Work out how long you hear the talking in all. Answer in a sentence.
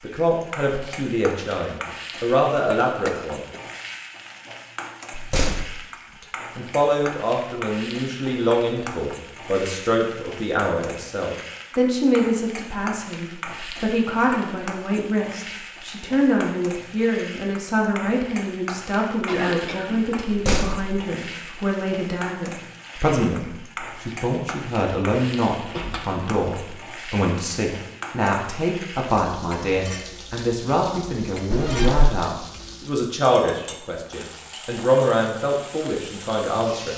The talking can be heard for 34 seconds in total.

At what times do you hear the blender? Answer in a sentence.
The blender can't be heard in this clip.